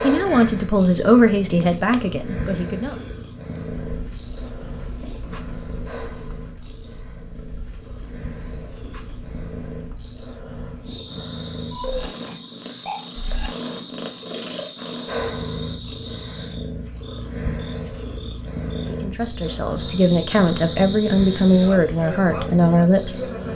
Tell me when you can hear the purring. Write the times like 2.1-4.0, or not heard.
0.0-23.5.